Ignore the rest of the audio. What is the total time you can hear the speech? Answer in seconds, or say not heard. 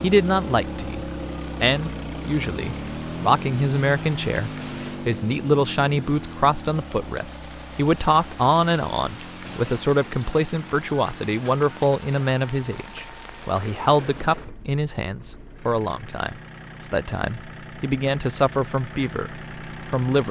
20 s.